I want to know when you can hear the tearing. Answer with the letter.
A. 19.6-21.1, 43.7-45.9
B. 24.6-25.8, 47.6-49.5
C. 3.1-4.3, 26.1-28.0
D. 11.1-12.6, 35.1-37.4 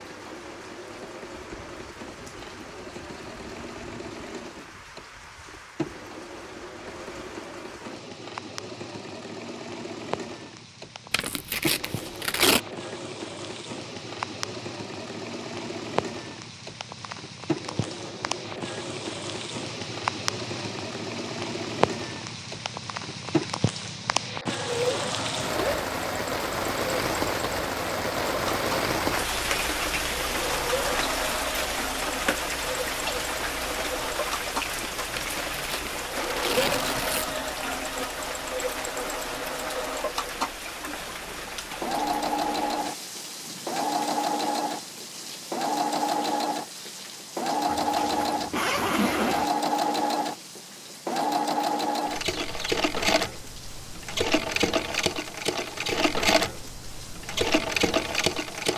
D.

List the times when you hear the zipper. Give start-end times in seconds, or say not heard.
24.6-25.8, 47.6-49.5.